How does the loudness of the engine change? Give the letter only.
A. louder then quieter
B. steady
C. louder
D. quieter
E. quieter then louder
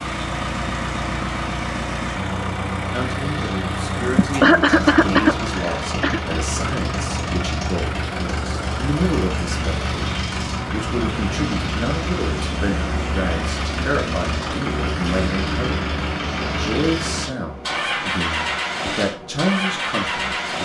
B.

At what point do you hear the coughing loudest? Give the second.
5 s.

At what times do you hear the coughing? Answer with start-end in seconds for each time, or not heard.
4.2-6.2.